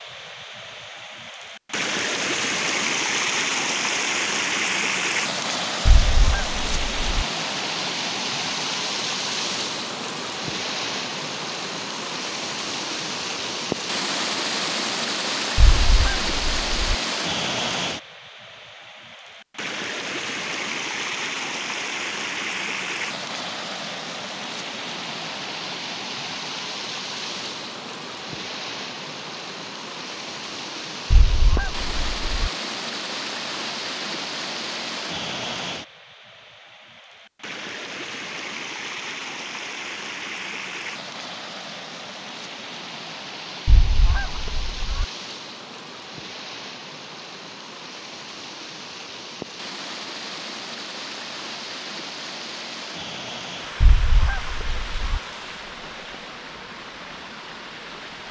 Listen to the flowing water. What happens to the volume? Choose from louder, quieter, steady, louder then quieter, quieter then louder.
quieter.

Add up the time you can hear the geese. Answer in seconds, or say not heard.
7 s.